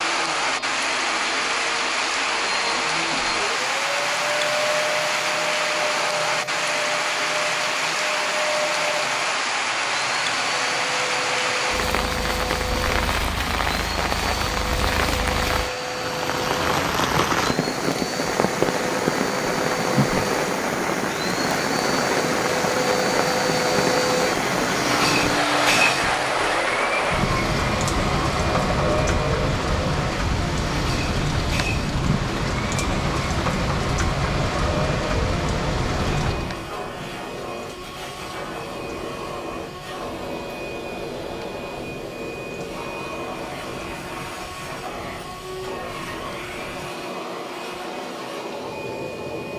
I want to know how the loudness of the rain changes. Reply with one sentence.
The loudness of the rain goes down.